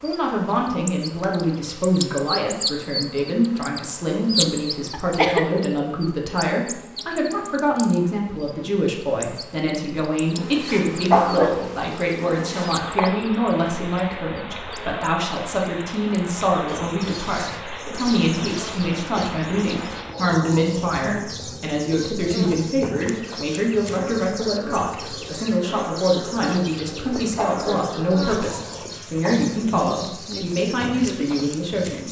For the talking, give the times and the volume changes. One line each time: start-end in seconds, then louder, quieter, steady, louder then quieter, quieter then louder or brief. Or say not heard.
0.0-32.0 steady.